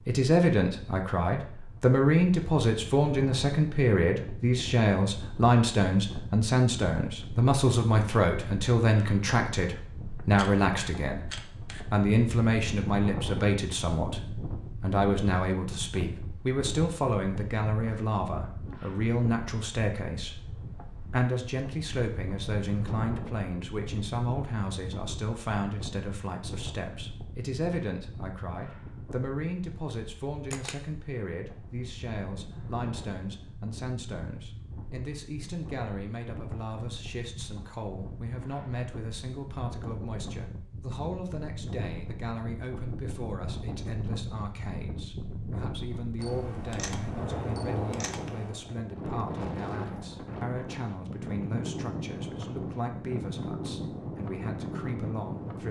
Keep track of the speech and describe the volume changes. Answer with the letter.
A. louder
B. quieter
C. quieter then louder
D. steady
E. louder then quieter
B.